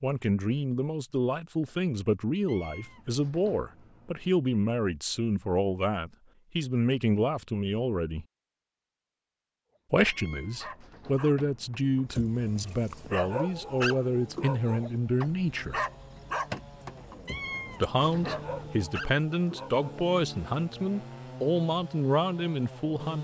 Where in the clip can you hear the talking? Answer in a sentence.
You can hear the talking from 0.0 to 8.2 s, from 9.9 to 15.8 s and from 17.8 to 23.1 s.